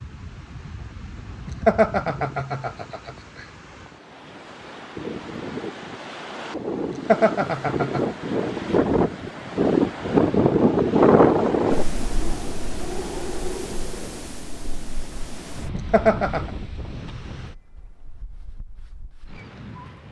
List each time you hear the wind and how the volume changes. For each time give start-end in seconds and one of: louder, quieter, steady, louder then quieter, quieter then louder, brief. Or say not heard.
0.0-20.0 louder then quieter.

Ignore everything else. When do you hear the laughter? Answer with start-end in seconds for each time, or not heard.
1.4-3.1, 6.9-8.1, 15.8-16.5.